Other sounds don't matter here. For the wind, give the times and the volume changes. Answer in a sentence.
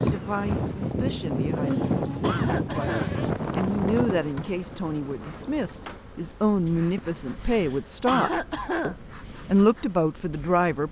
You can hear the wind from 0.0 to 10.8 s, getting quieter.